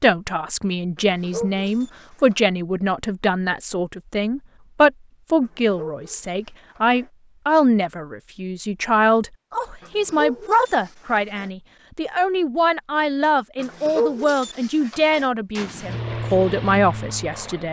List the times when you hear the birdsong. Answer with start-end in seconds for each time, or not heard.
not heard.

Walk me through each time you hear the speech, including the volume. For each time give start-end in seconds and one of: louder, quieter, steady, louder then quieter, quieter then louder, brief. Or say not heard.
0.0-17.6 steady.